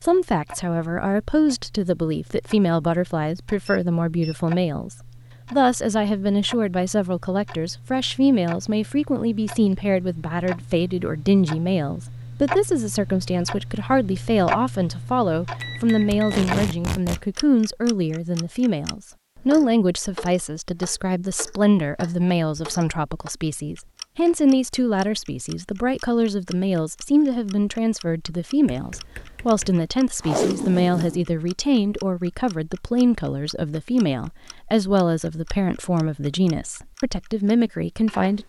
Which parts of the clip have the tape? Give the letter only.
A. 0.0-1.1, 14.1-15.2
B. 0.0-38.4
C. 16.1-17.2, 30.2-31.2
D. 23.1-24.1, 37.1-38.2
C.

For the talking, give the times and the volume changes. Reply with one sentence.
The talking can be heard from 0.0 to 38.4 s, at a steady volume.